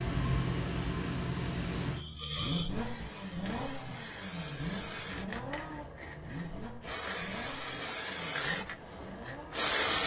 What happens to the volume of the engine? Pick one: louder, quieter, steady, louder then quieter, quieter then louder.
quieter.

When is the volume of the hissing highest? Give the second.
10 s.